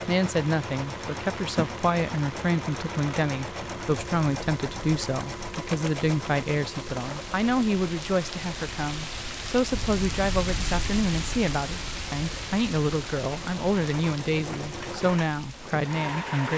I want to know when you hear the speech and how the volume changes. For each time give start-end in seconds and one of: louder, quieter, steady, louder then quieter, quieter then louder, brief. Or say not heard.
0.1-16.5 steady.